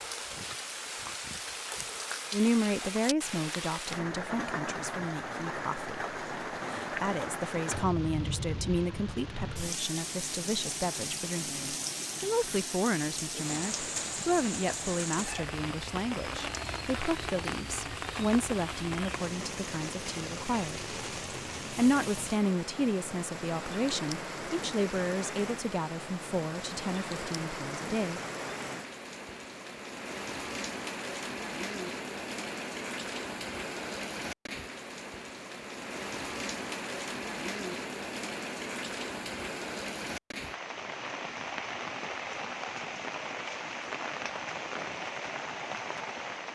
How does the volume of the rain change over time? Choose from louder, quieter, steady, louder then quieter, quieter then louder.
steady.